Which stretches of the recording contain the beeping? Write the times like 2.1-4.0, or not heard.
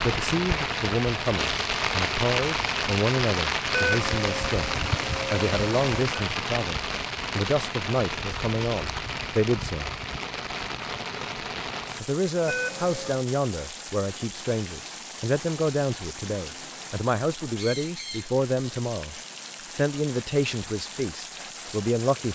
3.7-6.2, 12.4-13.2.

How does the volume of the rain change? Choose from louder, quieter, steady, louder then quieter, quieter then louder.
quieter.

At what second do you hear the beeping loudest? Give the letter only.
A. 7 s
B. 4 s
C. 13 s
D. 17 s
B.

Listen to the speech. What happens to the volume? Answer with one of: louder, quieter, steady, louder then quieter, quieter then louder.
steady.